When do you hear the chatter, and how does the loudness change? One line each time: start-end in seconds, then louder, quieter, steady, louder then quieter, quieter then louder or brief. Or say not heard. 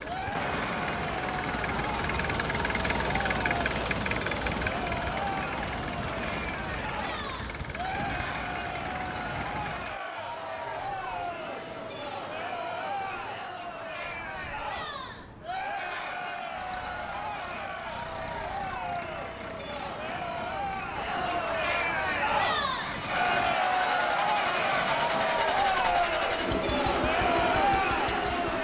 0.0-28.6 louder.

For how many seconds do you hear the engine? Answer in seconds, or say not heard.
22 s.